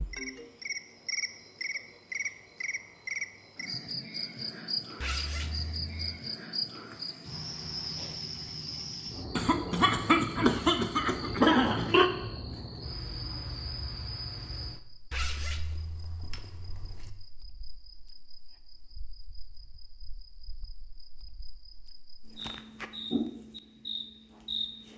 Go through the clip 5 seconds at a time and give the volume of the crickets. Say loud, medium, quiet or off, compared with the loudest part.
loud, loud, loud, quiet, loud.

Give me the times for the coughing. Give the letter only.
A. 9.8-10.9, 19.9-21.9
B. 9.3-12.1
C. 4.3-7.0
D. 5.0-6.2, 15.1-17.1
B.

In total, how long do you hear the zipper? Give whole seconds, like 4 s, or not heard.
3 s.